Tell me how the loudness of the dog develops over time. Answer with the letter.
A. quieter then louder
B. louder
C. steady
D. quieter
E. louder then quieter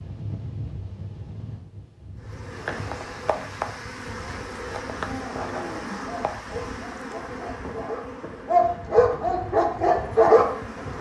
B.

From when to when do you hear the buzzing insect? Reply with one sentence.
The buzzing insect can be heard from 2.2 to 10.9 s.